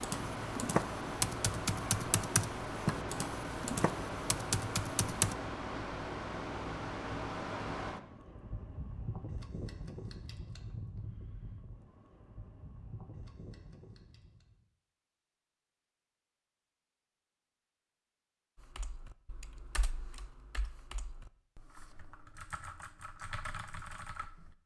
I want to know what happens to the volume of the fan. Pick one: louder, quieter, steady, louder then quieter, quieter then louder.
quieter.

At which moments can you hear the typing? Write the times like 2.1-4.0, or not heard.
0.0-5.3, 18.6-24.6.